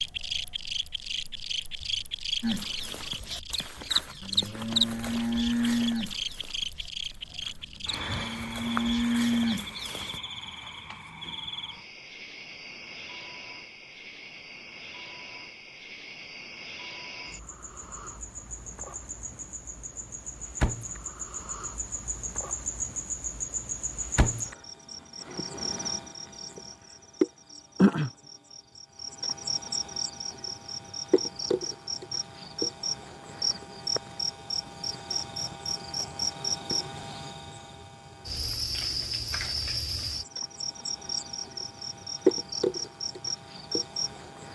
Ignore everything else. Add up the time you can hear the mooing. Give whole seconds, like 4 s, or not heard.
8 s.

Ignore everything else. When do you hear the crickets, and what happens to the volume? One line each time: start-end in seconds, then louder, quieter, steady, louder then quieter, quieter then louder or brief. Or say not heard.
0.0-44.4 quieter then louder.